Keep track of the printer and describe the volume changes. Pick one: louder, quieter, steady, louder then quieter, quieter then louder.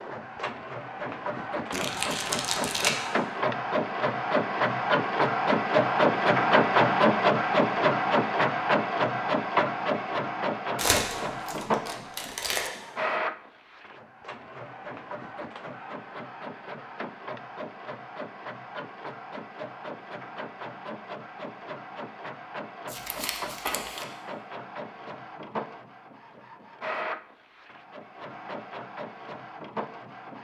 quieter.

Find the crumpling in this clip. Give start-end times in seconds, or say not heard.
1.7-3.0, 10.8-12.7, 22.9-24.1.